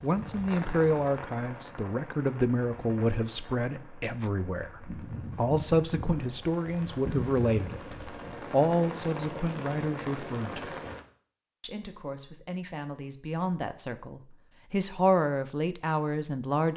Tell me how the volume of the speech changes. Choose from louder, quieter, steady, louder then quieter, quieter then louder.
quieter then louder.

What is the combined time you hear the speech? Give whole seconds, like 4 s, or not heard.
16 s.